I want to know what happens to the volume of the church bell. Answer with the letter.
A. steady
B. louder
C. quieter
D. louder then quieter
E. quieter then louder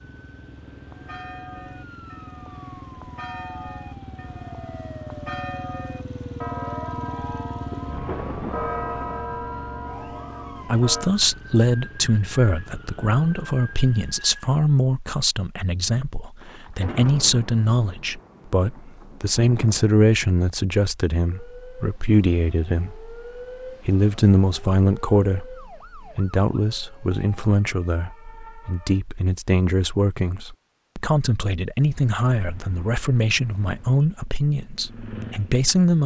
B.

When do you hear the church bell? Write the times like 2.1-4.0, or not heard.
0.8-11.1.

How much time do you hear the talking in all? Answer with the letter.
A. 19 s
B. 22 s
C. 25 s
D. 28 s
C.